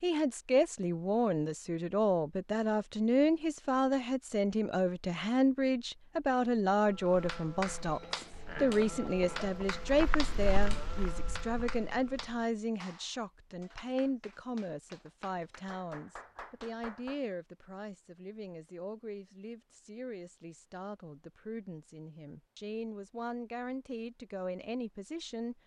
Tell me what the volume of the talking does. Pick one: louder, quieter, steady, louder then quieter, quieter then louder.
quieter.